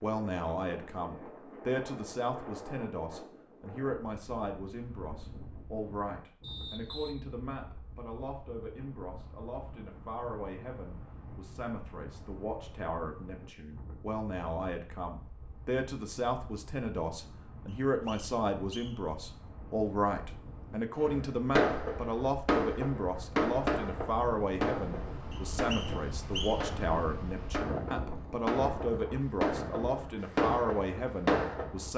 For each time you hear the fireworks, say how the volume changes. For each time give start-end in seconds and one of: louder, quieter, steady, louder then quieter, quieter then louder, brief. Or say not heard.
20.9-31.7 quieter then louder.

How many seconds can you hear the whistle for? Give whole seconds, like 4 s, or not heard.
4 s.